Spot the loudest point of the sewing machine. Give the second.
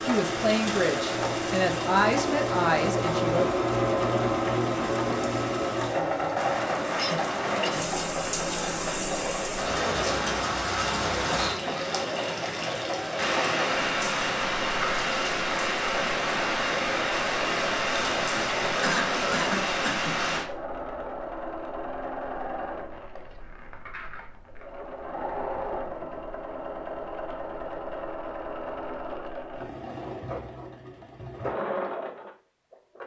4 s.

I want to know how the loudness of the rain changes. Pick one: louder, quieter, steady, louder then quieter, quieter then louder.
louder.